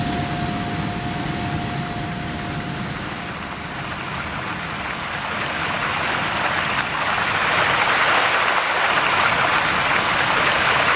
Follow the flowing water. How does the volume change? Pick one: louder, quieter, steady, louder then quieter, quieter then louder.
louder.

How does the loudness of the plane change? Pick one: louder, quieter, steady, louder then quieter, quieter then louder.
quieter.